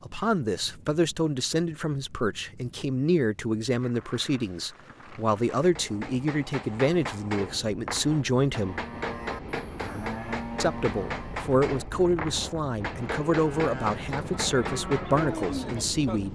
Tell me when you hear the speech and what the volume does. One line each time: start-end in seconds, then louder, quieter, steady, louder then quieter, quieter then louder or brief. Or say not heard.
0.0-8.8 steady
10.6-16.2 steady.